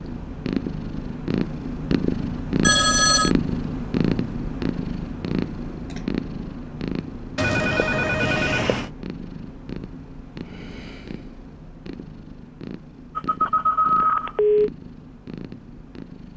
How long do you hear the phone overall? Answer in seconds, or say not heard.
4 s.